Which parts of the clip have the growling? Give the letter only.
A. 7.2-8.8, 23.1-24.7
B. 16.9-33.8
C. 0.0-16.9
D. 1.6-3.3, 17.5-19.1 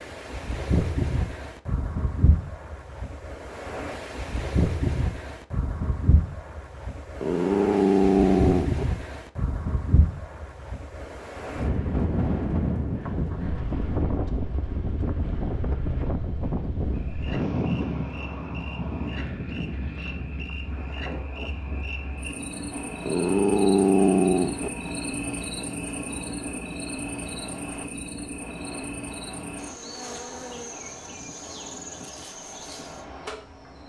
A.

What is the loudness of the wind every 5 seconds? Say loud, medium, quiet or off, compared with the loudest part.
loud, loud, loud, loud, medium, quiet, quiet.